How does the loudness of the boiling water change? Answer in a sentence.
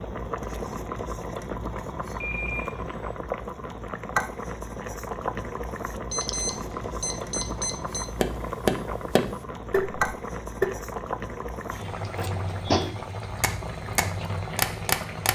The volume of the boiling water stays about the same.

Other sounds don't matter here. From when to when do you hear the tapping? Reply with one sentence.
You can hear the tapping from 8.2 to 10.7 s and from 12.2 to 15.2 s.